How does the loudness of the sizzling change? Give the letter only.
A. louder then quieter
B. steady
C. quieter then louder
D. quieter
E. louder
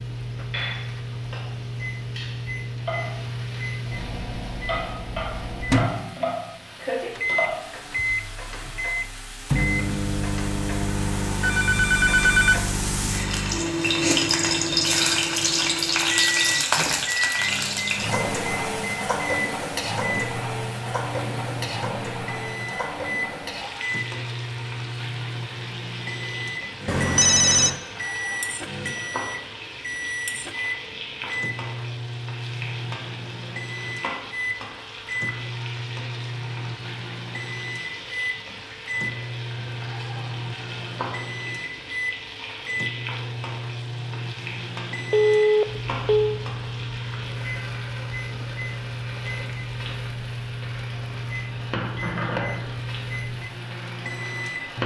A.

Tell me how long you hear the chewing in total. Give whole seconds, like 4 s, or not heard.
not heard.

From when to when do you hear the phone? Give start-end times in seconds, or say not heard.
11.4-12.6, 26.9-27.8, 45.1-46.4.